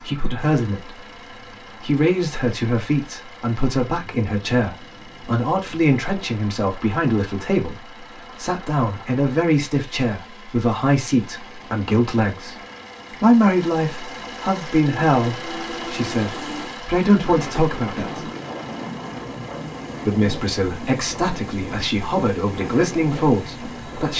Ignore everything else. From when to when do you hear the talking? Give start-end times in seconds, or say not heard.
0.0-1.0, 1.8-18.3, 20.1-24.1.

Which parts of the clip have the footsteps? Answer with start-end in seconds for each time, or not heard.
not heard.